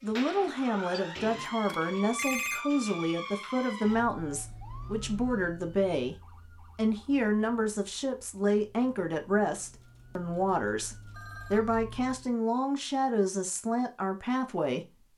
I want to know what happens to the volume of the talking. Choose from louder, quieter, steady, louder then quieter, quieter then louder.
steady.